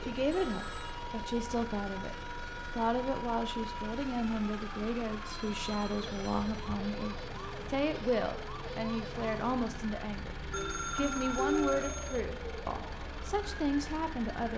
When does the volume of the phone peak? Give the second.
12 s.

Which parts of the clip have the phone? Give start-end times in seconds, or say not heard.
0.3-0.9, 5.2-6.7, 10.5-12.2.